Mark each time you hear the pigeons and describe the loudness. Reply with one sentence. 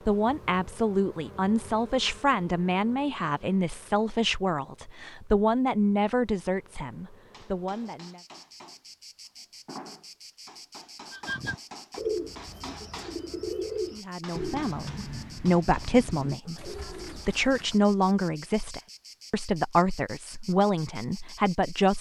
You can hear the pigeons from 11.1 to 17.9 s, getting quieter.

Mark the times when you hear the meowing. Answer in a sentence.
You can't hear the meowing here.